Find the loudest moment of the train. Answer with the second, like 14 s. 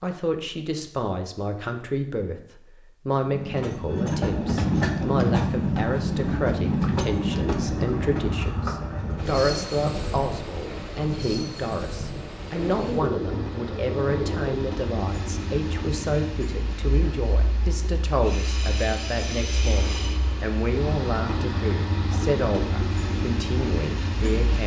5 s.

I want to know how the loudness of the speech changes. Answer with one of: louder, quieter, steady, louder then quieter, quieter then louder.
steady.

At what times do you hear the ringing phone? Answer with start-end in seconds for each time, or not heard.
not heard.